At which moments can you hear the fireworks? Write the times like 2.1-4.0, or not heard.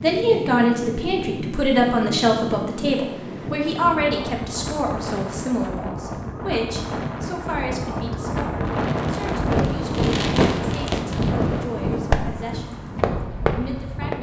8.7-14.1.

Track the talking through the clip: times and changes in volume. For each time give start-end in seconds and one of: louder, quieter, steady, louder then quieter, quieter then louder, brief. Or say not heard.
0.0-12.8 quieter
13.4-14.1 brief.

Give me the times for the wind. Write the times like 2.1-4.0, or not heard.
0.0-14.1.